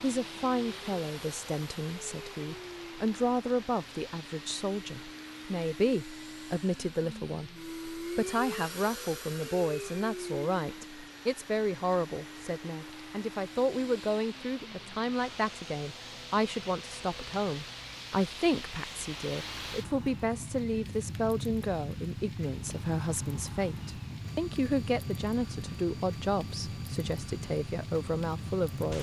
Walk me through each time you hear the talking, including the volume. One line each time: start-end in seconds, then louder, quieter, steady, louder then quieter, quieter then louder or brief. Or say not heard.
0.0-28.9 steady.